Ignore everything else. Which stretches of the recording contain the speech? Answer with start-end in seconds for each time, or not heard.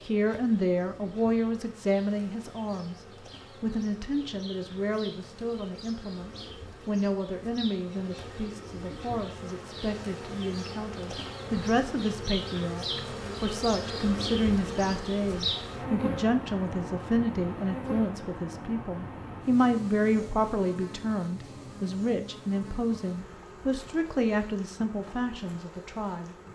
0.1-3.0, 3.6-26.5.